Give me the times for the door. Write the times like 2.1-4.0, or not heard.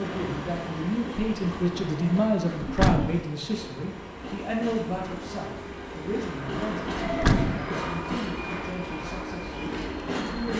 2.6-3.2, 7.0-7.7.